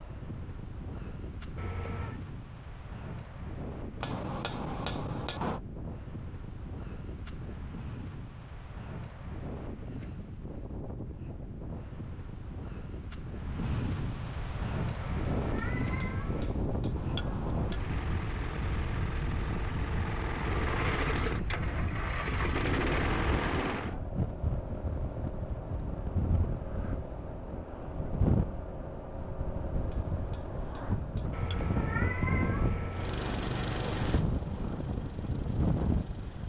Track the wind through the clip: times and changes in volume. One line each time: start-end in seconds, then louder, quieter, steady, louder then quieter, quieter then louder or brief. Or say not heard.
0.0-36.4 louder.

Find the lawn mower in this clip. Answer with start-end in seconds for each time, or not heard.
17.6-23.9, 32.9-36.4.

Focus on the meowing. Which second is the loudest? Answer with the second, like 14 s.
32 s.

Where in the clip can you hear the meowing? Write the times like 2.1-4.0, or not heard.
1.6-2.2, 15.1-16.6, 31.3-33.2.